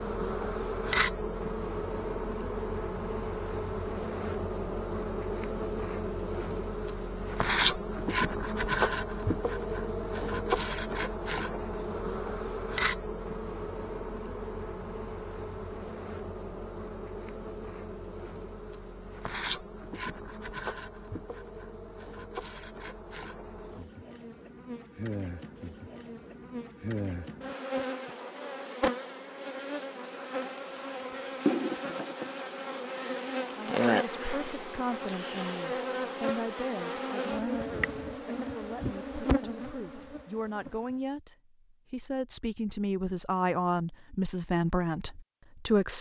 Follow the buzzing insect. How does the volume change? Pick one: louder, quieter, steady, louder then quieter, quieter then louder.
quieter then louder.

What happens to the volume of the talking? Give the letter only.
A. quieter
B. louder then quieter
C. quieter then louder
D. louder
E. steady
D.